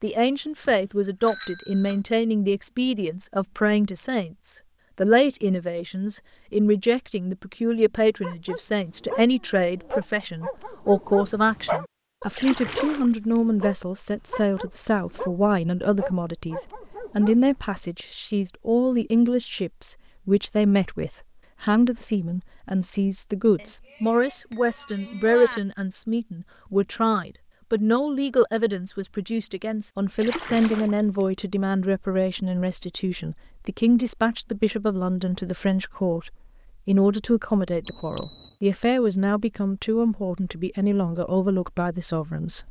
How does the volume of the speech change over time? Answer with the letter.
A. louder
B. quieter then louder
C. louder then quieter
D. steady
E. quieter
D.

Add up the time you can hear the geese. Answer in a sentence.
The geese can't be heard in this clip.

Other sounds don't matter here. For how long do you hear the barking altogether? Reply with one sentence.
The barking can be heard for 9 seconds in total.